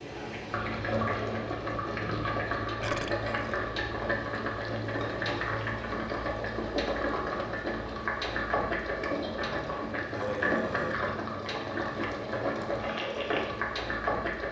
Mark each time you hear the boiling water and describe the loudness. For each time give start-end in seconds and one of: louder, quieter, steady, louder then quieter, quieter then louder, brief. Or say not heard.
0.0-14.4 steady.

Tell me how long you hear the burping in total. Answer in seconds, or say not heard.
2 s.